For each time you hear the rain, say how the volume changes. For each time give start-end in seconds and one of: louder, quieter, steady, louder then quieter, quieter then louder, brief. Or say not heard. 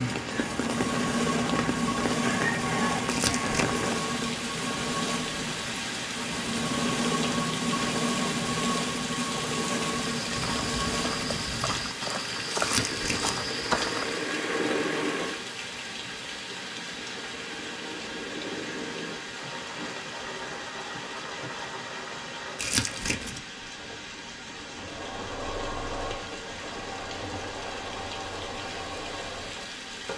0.0-30.1 quieter.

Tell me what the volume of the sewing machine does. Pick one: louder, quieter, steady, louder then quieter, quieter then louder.
quieter.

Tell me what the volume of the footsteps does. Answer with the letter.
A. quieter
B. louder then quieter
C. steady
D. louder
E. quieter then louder
D.